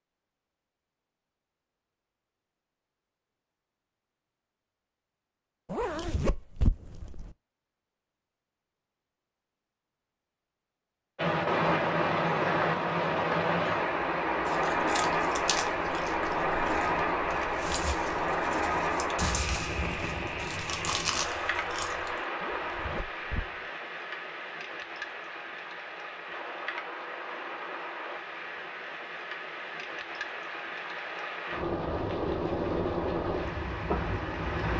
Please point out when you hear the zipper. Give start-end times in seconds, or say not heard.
5.7-7.3, 22.4-23.6.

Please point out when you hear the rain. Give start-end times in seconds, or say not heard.
11.2-34.7.